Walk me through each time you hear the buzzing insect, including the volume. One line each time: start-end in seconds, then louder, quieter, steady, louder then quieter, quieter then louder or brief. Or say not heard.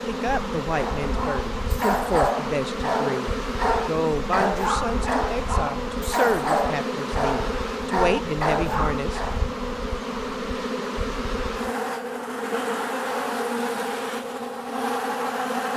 0.0-15.7 steady.